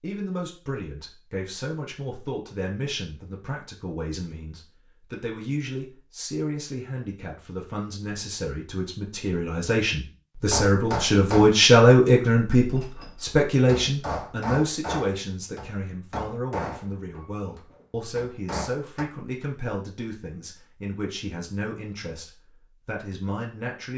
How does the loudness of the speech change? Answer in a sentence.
The loudness of the speech goes up, then down.